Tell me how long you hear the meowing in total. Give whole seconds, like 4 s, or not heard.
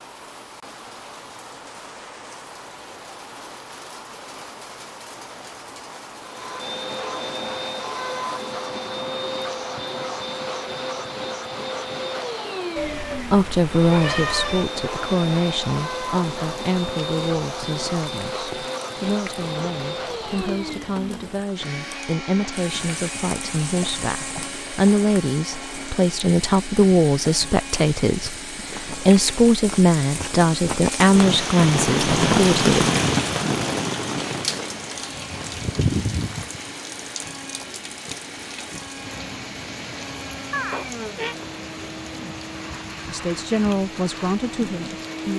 3 s.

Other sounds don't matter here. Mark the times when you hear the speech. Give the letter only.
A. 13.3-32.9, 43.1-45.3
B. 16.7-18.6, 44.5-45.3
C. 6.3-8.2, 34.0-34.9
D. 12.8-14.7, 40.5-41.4
A.